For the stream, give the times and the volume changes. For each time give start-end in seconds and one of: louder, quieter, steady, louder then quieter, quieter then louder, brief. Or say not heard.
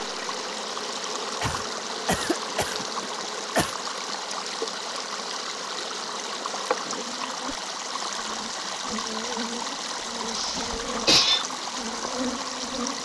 0.0-12.9 steady.